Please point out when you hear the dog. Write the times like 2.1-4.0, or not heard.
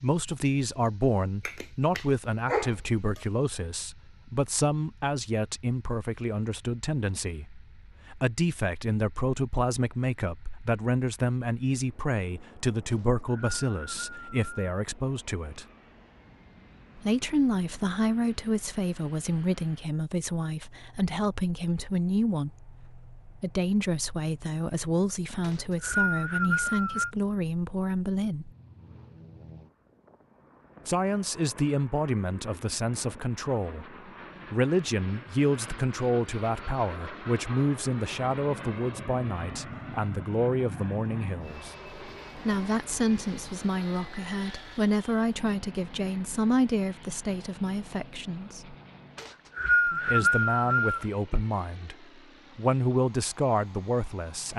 1.4-3.2.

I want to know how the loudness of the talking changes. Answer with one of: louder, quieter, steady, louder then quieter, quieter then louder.
steady.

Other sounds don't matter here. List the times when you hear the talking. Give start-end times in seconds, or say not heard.
0.0-15.7, 16.9-28.5, 30.9-33.9, 34.5-41.8, 42.4-48.8, 49.9-54.5.